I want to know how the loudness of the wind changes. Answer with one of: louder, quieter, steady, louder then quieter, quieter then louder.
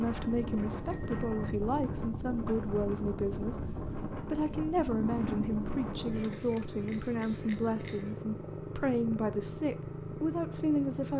steady.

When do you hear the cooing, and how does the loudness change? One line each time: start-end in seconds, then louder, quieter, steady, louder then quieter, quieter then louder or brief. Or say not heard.
not heard.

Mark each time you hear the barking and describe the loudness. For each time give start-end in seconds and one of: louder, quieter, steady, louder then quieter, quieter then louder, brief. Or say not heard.
not heard.